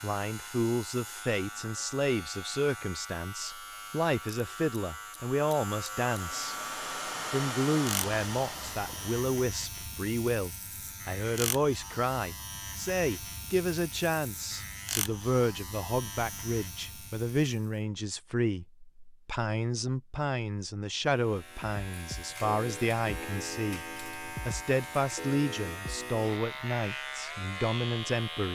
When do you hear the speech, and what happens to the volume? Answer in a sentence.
You can hear the speech from 0.0 to 6.5 s, getting quieter then louder; and from 7.3 to 28.5 s, at a steady volume.